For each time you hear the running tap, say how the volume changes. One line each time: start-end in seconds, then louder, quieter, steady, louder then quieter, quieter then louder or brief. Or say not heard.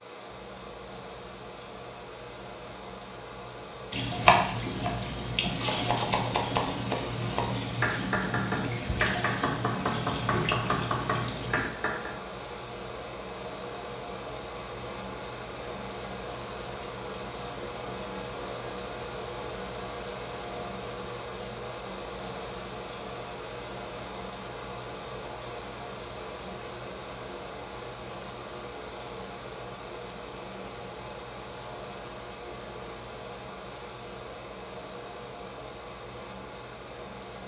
3.9-11.7 steady.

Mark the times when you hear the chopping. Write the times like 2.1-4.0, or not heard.
4.1-12.1.